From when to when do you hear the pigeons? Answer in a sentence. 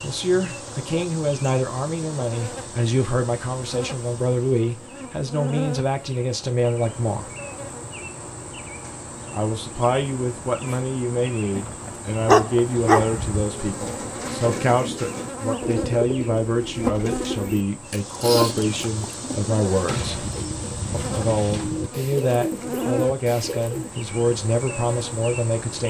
You can hear the pigeons from 13.6 to 24.0 s.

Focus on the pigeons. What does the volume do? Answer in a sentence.
The volume of the pigeons stays about the same.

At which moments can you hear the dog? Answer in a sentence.
You can hear the dog from 11.6 to 13.4 s.